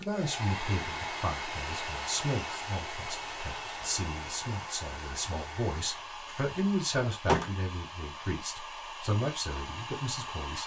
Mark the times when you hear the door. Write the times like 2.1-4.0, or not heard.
6.2-7.5.